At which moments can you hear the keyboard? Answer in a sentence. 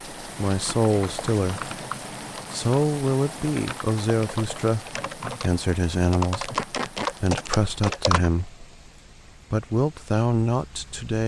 You can hear the keyboard from 0.7 to 8.3 s.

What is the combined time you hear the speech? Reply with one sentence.
The speech can be heard for 9 seconds in total.